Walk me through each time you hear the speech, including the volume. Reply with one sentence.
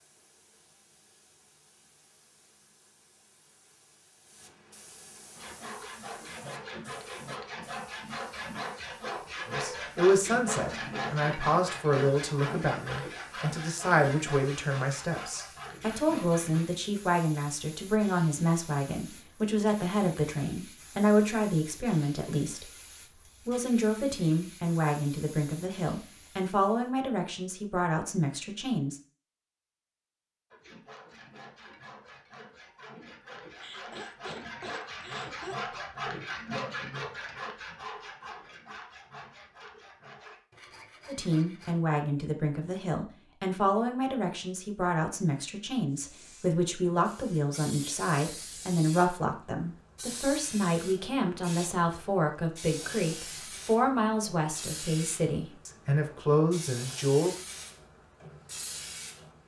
The speech can be heard from 9.4 to 29.0 s, at a steady volume; and from 41.0 to 57.4 s, at a steady volume.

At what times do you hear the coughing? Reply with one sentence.
You can hear the coughing from 33.5 to 35.5 s.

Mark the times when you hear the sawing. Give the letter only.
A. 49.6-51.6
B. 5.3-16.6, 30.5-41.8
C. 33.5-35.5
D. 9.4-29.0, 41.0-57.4
B.